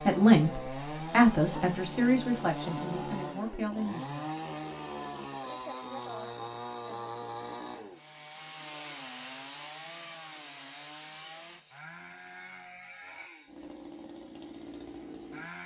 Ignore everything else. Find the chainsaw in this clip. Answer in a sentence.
You can hear the chainsaw from 0.0 to 15.6 s.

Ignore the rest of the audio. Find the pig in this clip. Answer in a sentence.
You can't hear the pig here.